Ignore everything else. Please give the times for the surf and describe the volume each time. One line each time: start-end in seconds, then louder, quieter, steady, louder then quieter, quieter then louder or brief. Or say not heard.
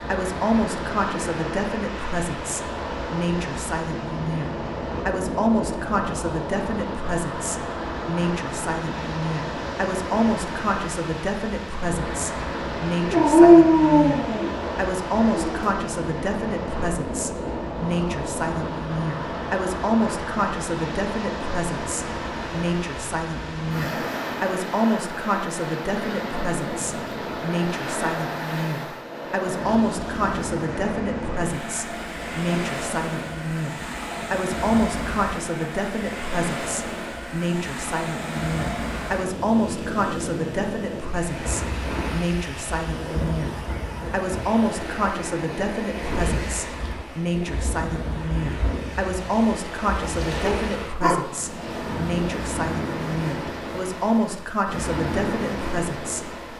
0.0-56.5 steady.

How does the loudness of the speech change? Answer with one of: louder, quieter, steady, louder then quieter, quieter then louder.
steady.